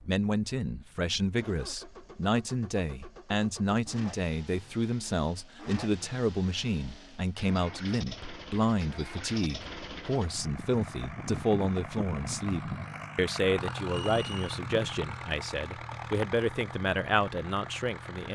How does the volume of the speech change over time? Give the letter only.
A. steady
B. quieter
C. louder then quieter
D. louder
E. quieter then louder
A.